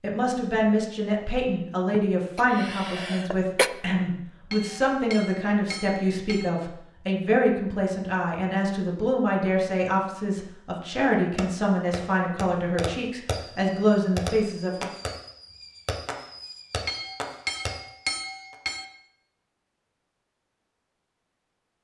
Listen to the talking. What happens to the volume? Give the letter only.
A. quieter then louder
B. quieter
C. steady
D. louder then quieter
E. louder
C.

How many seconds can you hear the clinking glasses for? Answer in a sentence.
You can hear the clinking glasses for 4 seconds altogether.